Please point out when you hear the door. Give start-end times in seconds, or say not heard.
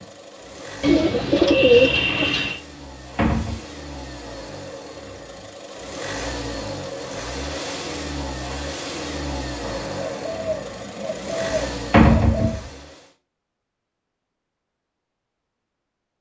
3.1-3.6, 11.9-12.6.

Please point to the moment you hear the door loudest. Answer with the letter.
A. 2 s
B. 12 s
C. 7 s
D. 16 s
B.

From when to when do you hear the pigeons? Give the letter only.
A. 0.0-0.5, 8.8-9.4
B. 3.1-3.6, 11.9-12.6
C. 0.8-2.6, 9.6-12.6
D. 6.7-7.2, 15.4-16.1
C.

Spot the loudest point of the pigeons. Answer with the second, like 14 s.
2 s.